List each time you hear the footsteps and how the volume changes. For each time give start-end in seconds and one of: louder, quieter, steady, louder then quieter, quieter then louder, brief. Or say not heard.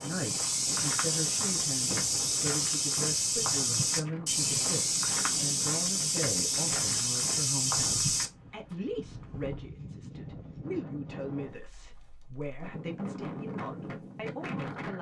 0.0-8.3 steady.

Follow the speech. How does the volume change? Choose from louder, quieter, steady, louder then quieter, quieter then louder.
steady.